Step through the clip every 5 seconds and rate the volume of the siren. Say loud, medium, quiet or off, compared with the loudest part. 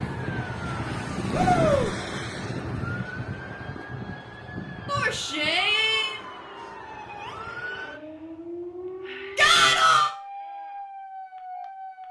loud, medium, medium.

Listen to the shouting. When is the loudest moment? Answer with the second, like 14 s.
10 s.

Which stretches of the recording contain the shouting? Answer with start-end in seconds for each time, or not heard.
1.3-1.9, 4.8-6.2, 9.3-10.1.